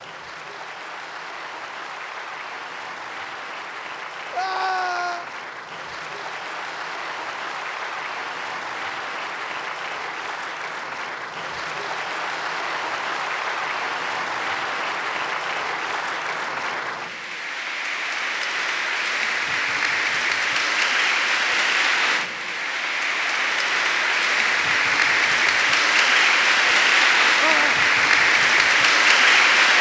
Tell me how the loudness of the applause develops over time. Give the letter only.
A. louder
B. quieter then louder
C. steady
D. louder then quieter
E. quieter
A.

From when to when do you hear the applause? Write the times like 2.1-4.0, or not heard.
0.0-29.7.